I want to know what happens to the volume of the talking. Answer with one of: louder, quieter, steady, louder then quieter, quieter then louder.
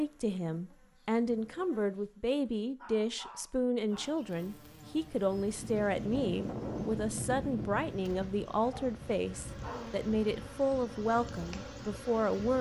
steady.